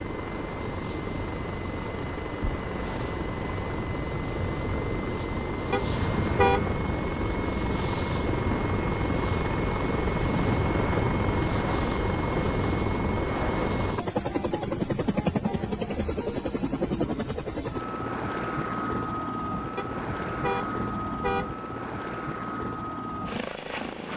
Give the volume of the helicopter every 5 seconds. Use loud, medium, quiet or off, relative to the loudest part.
medium, loud, loud, loud, medium.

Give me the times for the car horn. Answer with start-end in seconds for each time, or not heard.
5.7-6.8, 19.8-21.6.